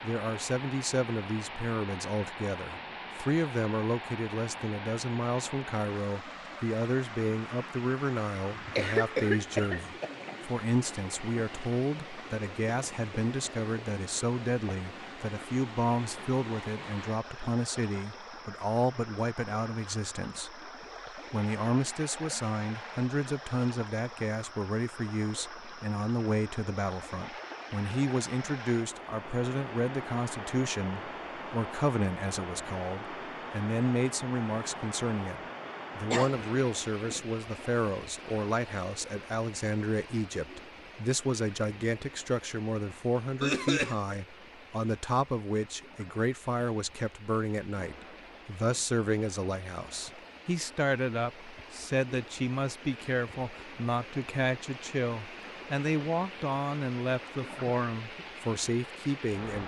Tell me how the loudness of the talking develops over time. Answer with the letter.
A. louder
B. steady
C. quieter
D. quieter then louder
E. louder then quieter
B.